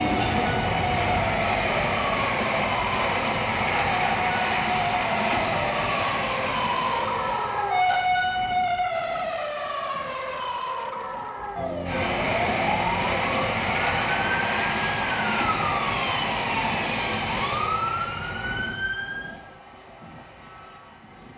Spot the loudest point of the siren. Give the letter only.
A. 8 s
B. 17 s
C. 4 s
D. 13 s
A.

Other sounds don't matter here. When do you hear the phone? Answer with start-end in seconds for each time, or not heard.
not heard.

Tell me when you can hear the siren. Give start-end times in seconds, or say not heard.
0.0-19.4.